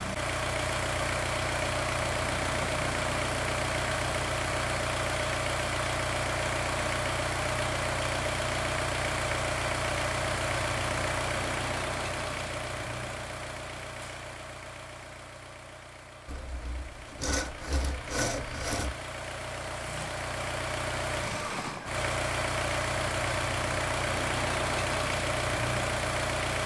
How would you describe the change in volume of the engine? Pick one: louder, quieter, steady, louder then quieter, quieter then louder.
quieter then louder.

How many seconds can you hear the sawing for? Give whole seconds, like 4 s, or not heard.
3 s.